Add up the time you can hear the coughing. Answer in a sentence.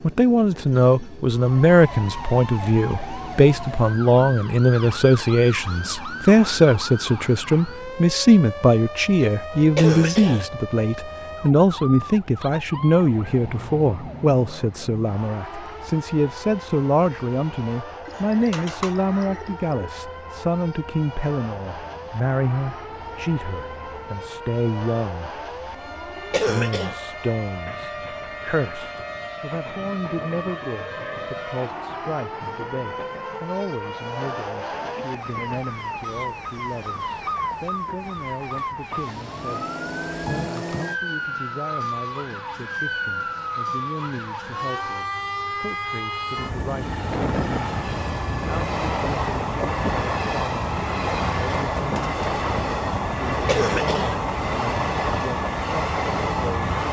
The coughing can be heard for 2 seconds in total.